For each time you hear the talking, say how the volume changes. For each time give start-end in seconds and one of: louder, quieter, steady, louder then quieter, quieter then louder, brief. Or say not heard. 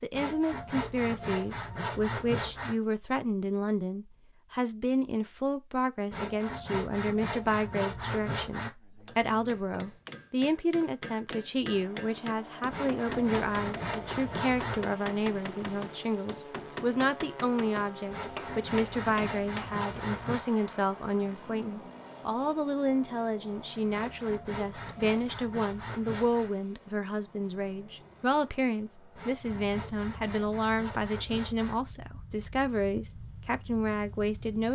0.0-34.7 steady.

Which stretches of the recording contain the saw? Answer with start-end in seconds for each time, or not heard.
0.1-2.8, 6.1-8.7, 12.7-14.9, 18.1-20.4, 23.9-26.5, 29.1-31.9.